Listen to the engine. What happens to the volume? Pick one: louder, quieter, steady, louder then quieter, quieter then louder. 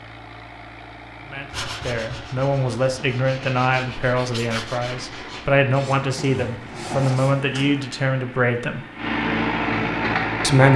louder.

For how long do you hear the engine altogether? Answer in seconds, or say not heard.
11 s.